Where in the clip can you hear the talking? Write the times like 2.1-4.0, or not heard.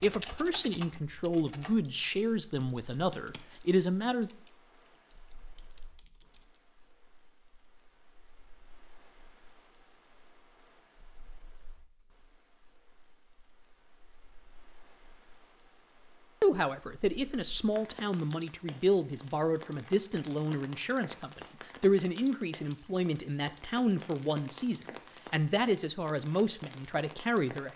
0.0-4.3, 16.4-27.7.